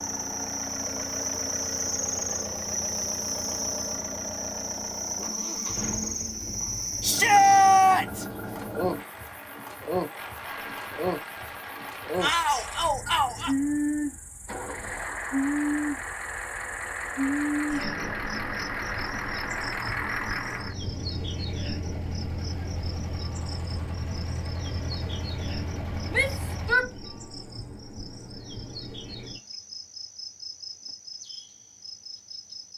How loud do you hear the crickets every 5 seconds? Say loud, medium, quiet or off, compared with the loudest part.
loud, loud, loud, loud, medium, medium, medium.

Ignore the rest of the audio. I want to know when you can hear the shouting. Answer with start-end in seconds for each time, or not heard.
7.0-8.2, 12.2-13.6, 26.1-26.9.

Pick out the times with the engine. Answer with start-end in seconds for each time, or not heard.
0.0-26.8.